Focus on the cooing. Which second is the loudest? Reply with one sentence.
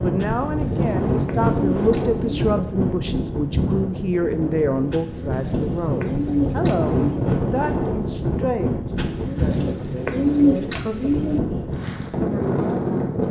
The volume of the cooing peaks at 10 seconds.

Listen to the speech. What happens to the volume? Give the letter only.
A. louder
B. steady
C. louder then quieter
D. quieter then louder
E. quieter
E.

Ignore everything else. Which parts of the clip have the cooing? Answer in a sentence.
You can hear the cooing from 0.2 to 2.4 s, from 4.9 to 7.3 s and from 8.9 to 11.4 s.